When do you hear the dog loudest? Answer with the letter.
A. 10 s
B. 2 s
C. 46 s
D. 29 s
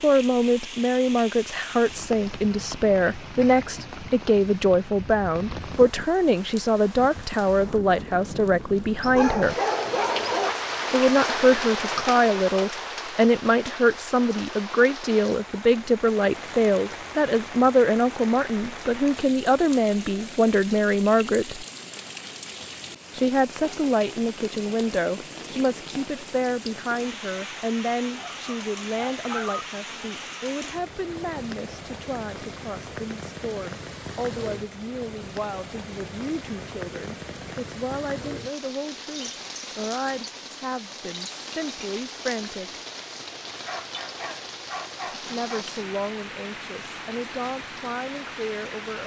A.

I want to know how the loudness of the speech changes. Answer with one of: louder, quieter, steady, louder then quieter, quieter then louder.
quieter.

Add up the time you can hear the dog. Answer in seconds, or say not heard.
5 s.